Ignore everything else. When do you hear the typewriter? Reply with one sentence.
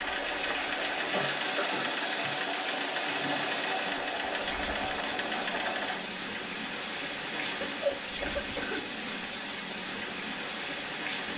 You can't hear the typewriter here.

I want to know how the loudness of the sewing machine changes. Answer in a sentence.
The loudness of the sewing machine stays about the same.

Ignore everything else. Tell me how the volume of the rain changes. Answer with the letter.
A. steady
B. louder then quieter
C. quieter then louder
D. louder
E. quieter
A.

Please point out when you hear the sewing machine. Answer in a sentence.
You can hear the sewing machine from 0.0 to 6.0 s.